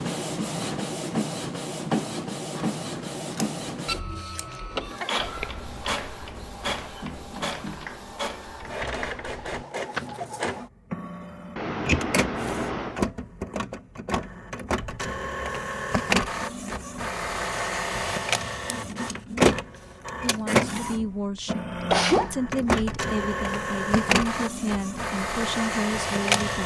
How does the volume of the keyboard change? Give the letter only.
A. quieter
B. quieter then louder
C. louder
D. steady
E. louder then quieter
C.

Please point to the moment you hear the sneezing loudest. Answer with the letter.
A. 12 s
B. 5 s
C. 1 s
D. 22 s
D.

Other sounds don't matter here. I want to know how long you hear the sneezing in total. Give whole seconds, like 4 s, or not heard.
2 s.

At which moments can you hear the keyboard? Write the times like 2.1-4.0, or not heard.
5.2-10.6.